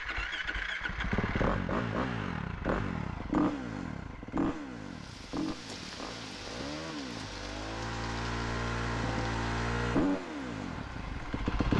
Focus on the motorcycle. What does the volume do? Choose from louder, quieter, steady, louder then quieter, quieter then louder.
quieter then louder.